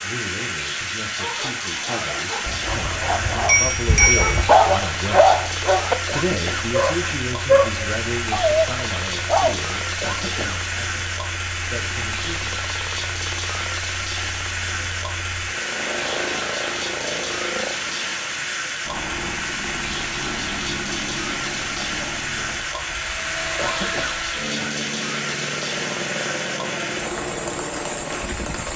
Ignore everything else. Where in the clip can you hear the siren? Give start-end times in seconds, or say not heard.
not heard.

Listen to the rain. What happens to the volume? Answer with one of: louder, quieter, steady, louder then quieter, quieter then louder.
steady.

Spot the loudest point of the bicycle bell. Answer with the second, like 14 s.
4 s.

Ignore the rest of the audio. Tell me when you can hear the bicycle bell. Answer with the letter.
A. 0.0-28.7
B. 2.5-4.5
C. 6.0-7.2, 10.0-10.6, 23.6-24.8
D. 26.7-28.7
B.